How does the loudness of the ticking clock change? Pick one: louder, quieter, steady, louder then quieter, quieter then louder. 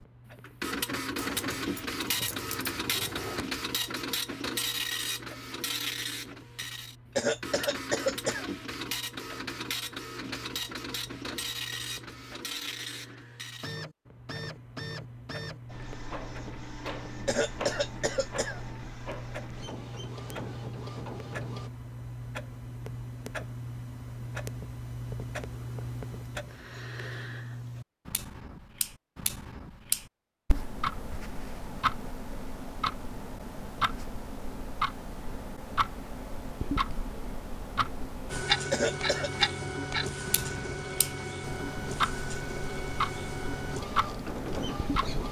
louder.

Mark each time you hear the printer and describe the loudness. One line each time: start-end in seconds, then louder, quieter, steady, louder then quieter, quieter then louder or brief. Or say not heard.
0.0-21.7 quieter
38.2-45.2 steady.